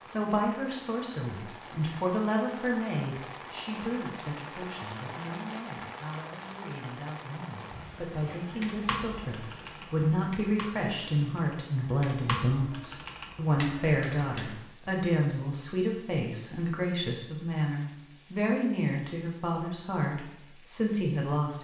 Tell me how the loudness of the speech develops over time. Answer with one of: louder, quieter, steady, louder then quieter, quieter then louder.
quieter then louder.